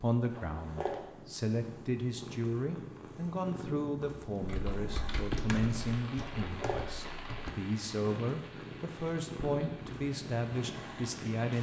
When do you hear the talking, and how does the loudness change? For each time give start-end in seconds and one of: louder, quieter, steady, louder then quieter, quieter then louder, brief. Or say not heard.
0.0-11.5 steady.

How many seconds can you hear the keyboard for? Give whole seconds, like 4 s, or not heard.
3 s.